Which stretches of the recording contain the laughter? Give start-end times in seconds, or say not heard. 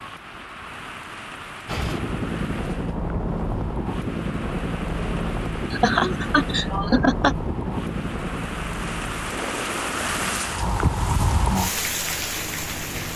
5.7-7.3.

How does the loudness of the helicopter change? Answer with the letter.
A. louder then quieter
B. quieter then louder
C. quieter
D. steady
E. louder
C.